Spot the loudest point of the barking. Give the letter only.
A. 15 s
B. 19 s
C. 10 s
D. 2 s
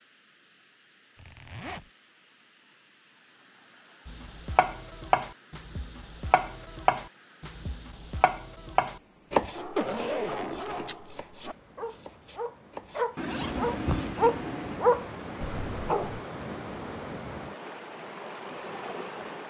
A.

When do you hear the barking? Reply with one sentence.
The barking can be heard from 9.5 to 16.2 s.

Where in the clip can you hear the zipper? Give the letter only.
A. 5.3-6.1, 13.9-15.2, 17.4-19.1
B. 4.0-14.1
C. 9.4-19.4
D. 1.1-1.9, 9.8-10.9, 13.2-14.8
D.